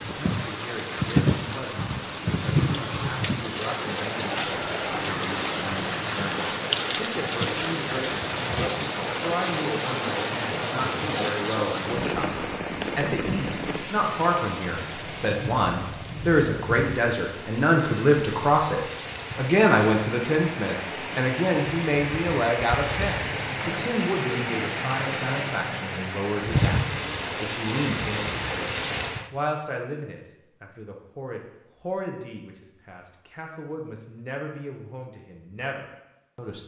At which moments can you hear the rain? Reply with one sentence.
The rain can be heard from 0.0 to 29.3 s.